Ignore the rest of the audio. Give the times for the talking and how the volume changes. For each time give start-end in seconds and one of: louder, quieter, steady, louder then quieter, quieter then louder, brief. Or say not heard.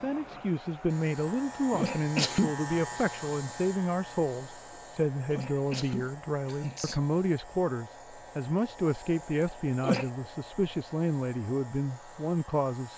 0.0-12.9 steady.